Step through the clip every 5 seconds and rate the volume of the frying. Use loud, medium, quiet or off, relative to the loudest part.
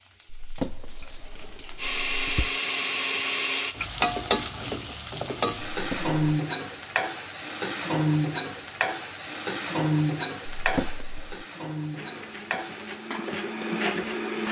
loud, loud, medium.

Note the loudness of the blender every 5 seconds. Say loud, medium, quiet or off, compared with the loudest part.
loud, off, loud.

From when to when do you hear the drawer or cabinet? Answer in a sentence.
The drawer or cabinet can be heard from 0.2 to 2.6 s, from 5.7 to 6.2 s and from 10.6 to 11.4 s.